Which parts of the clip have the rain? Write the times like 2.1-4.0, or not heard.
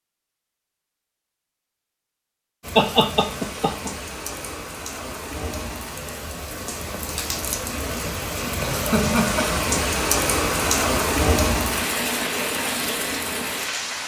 2.6-14.0.